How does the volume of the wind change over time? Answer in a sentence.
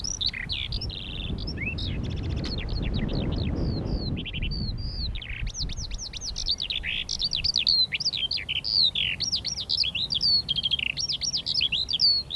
The loudness of the wind goes up, then down.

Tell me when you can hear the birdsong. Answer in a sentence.
You can hear the birdsong from 0.0 to 12.3 s.